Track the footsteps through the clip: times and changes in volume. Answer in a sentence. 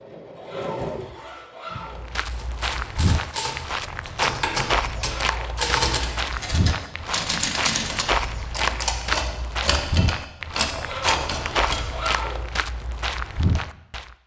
You can hear the footsteps from 1.8 to 14.2 s, at a steady volume.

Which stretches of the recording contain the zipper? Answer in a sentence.
You can hear the zipper from 0.3 to 2.0 s, from 4.9 to 5.5 s and from 10.7 to 12.4 s.